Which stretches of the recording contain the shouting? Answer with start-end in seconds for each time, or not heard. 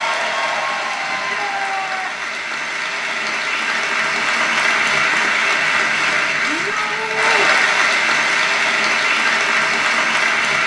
1.1-2.4, 6.5-7.5.